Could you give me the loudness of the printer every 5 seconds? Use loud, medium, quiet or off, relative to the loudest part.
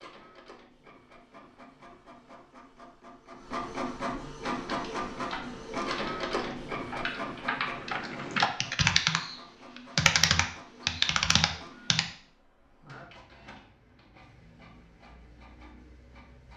loud, loud, quiet, quiet.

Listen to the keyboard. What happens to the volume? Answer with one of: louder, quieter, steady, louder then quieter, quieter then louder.
louder.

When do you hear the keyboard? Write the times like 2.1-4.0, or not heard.
4.4-12.1.